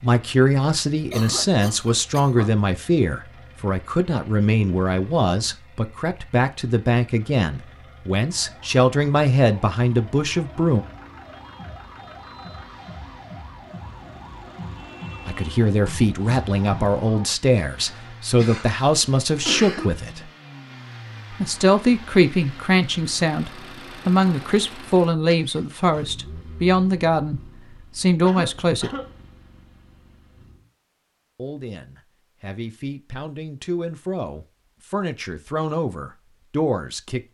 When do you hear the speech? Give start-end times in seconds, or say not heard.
0.0-10.8, 15.2-20.3, 21.3-28.9, 31.4-37.2.